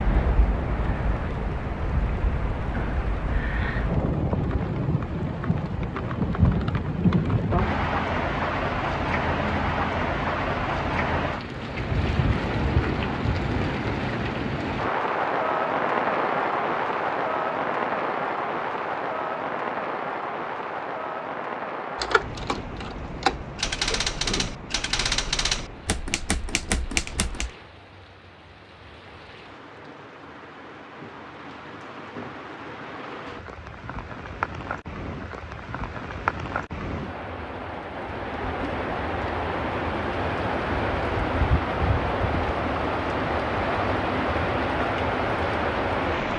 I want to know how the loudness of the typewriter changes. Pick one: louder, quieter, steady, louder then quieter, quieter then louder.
steady.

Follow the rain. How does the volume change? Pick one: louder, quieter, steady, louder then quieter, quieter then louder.
quieter then louder.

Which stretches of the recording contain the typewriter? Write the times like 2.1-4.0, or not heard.
21.9-27.5.